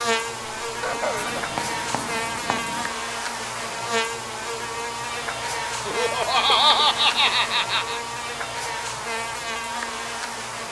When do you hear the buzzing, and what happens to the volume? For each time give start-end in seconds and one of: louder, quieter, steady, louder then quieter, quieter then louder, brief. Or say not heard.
0.0-10.6 steady.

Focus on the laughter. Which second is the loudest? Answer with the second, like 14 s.
7 s.